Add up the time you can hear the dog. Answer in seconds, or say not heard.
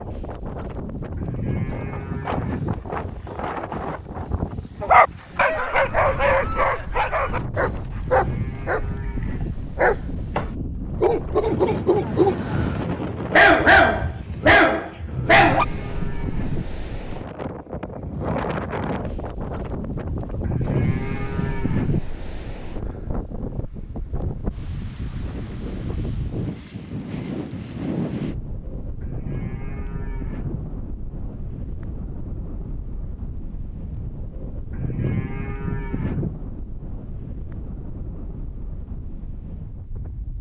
11 s.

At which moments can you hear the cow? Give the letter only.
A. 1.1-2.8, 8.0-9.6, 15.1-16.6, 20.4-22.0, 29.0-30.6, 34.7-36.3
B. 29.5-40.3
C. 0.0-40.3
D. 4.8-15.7
A.